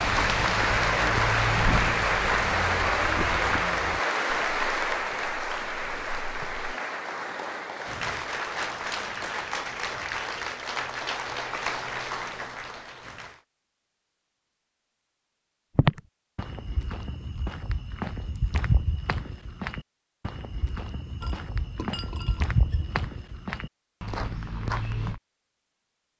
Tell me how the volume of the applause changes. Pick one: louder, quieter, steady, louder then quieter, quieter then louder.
quieter.